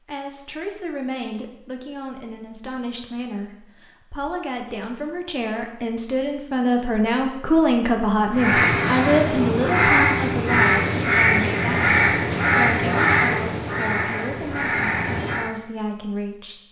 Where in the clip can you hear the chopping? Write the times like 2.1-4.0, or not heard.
not heard.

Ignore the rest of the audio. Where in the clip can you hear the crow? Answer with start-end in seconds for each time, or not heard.
8.3-15.6.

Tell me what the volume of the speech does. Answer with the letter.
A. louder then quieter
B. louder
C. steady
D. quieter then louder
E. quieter
A.